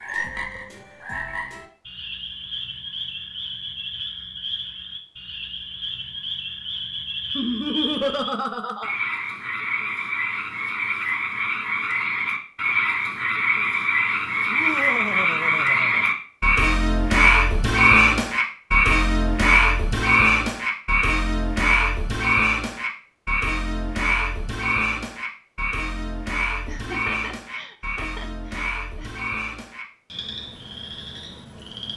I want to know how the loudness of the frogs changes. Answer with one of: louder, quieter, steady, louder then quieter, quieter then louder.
louder then quieter.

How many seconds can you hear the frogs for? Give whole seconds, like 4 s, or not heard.
32 s.